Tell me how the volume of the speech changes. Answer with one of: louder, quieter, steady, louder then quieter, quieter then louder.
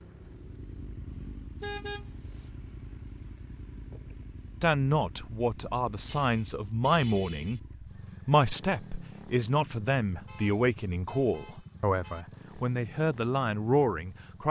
steady.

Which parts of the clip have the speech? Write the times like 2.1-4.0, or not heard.
4.6-7.6, 8.2-14.4.